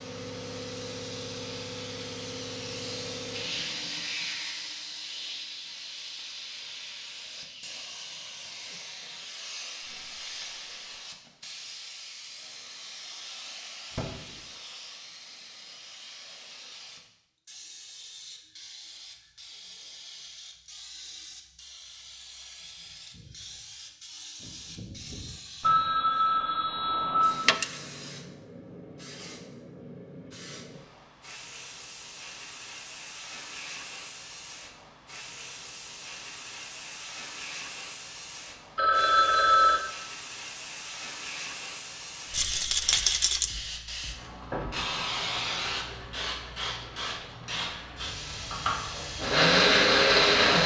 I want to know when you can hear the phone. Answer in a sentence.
The phone can be heard from 13.9 to 14.3 s, from 25.6 to 27.6 s and from 38.8 to 39.8 s.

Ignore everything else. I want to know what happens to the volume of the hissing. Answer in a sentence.
The volume of the hissing goes down, then up.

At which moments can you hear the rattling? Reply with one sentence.
The rattling can be heard from 10.1 to 11.1 s, from 27.4 to 27.8 s and from 42.3 to 43.5 s.